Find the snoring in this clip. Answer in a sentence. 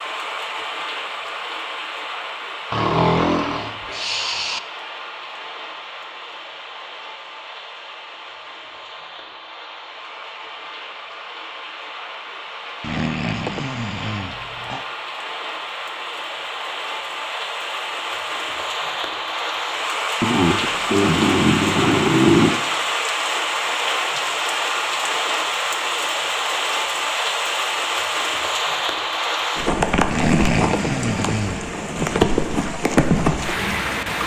You can hear the snoring from 2.7 to 4.6 s, from 12.8 to 14.8 s, from 20.2 to 22.6 s and from 30.1 to 31.7 s.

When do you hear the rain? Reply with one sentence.
You can hear the rain from 0.0 to 34.2 s.